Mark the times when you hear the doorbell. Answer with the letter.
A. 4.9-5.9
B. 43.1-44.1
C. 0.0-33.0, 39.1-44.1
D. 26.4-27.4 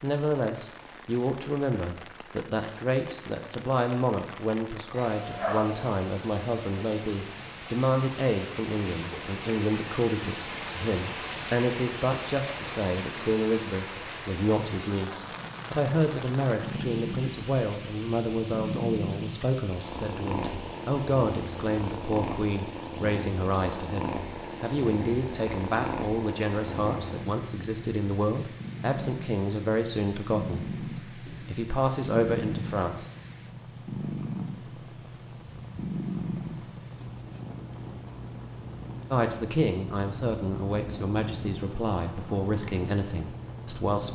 A.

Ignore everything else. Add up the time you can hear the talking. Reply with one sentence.
You can hear the talking for 38 seconds altogether.